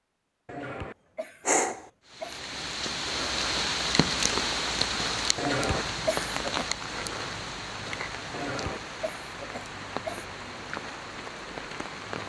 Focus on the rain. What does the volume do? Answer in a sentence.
The loudness of the rain goes down.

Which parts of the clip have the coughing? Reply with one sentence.
The coughing can be heard from 0.5 to 2.4 s, from 5.3 to 6.7 s and from 8.3 to 10.2 s.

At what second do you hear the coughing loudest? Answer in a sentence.
The volume of the coughing peaks at 6 seconds.